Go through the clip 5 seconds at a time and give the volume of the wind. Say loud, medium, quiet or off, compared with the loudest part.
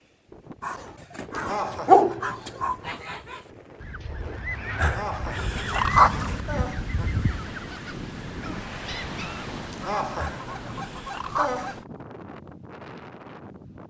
medium, loud, loud.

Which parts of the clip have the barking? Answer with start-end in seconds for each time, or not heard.
0.6-2.8, 4.8-6.4, 10.2-11.8.